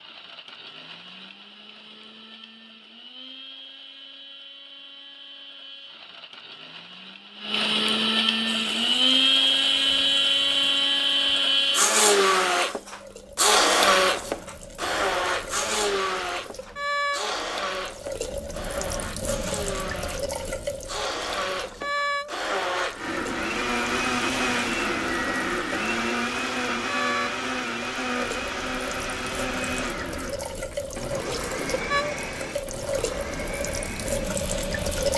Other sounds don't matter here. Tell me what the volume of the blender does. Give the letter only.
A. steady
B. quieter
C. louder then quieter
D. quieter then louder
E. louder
C.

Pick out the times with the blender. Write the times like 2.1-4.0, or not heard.
0.0-35.1.